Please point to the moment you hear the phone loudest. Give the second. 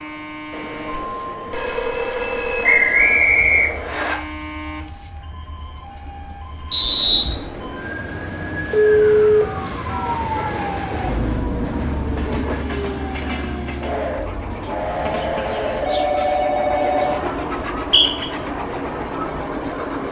9 s.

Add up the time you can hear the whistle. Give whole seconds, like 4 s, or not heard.
3 s.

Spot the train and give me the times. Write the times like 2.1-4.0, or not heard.
0.0-20.0.